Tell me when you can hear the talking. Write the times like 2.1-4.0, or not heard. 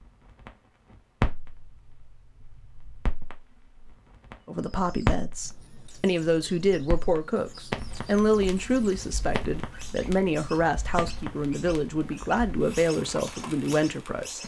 4.5-14.4.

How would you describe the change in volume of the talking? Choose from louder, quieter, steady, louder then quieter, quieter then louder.
steady.